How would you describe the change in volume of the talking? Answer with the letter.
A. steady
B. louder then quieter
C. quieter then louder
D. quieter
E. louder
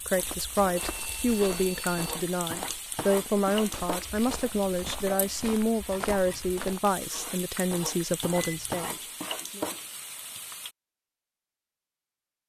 A.